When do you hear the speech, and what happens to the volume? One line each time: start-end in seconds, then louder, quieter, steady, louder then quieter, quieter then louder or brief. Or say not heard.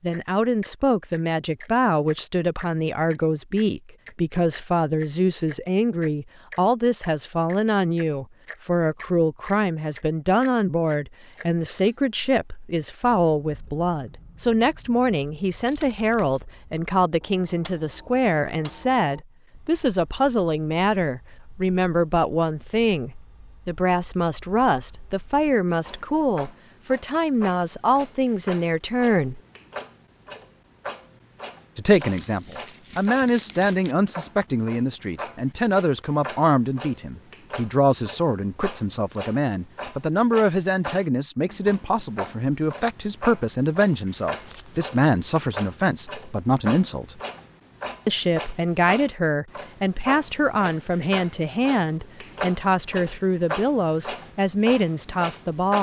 0.0-29.4 steady
31.8-47.2 steady
48.0-55.7 steady.